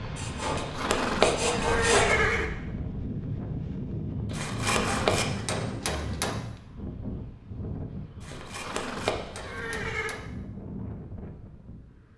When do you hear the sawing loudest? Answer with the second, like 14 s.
2 s.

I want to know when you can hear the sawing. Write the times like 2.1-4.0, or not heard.
0.1-2.1, 4.3-6.3, 8.2-10.2.